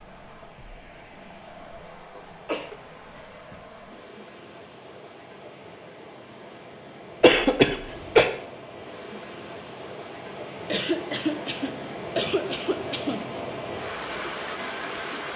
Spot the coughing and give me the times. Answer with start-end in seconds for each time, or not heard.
2.1-2.8, 7.2-8.3, 10.7-13.2.